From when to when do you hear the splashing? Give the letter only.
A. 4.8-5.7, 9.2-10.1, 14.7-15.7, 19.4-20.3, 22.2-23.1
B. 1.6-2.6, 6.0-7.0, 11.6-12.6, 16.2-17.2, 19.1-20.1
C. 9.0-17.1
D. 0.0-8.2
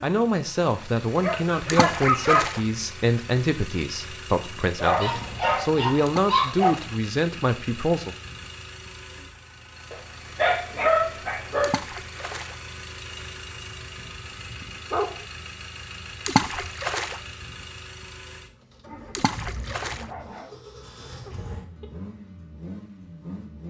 B.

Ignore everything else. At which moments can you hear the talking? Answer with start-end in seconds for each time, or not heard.
0.0-8.2.